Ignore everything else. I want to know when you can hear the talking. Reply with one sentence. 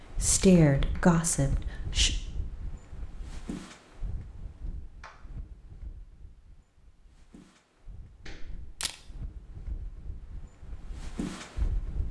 You can hear the talking from 0.2 to 2.1 s.